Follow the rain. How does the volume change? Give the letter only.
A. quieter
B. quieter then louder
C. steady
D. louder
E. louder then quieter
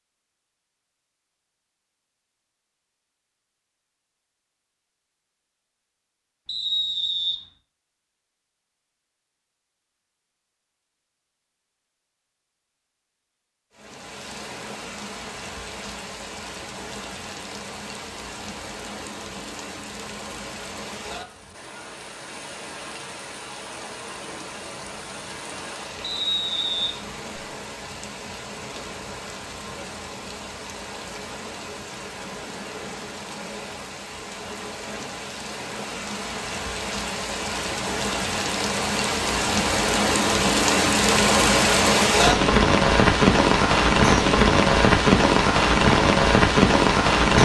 D.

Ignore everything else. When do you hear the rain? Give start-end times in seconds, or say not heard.
13.7-47.4.